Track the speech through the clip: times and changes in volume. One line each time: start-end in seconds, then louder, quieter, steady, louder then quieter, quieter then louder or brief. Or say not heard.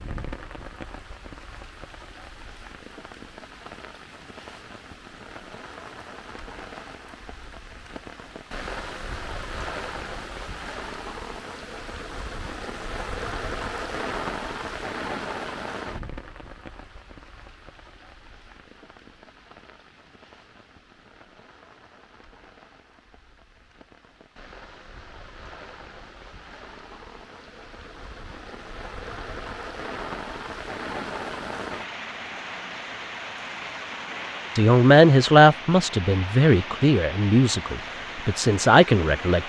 34.5-39.4 quieter then louder.